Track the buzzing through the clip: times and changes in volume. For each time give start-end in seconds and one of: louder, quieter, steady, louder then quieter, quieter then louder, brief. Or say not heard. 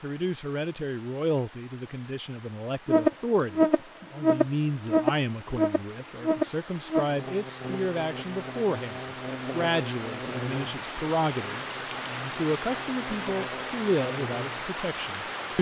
2.9-15.3 quieter.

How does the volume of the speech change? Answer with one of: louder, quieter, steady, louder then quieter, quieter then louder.
steady.